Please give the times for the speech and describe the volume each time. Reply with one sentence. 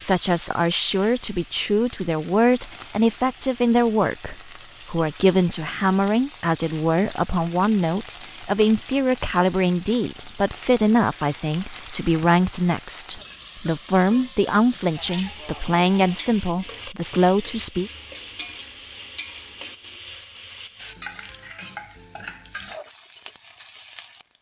You can hear the speech from 0.0 to 17.9 s, at a steady volume.